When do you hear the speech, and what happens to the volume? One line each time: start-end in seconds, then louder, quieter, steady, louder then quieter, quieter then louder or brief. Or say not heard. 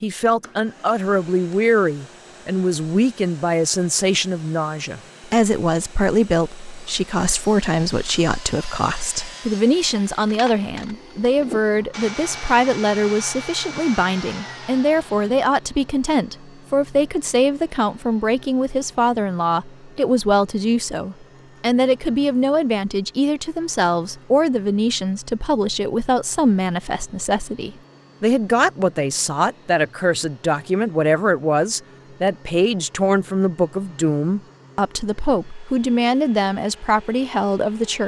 0.0-38.0 steady.